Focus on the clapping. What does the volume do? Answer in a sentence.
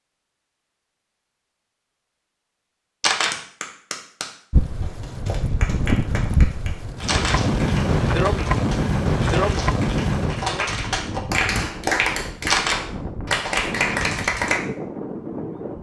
The volume of the clapping goes up.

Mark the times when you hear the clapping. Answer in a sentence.
You can hear the clapping from 3.3 to 14.6 s.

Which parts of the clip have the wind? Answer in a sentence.
The wind can be heard from 4.5 to 15.7 s.